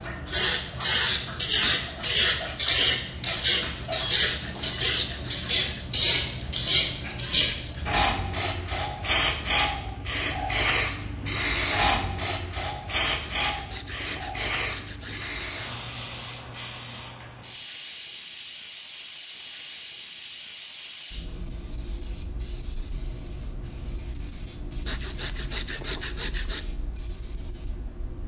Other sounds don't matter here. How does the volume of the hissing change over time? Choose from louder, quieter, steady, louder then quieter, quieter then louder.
quieter.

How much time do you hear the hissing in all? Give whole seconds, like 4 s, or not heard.
28 s.